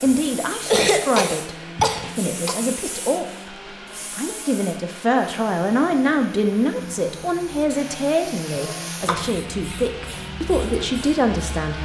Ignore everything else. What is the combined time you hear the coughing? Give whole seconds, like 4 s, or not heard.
3 s.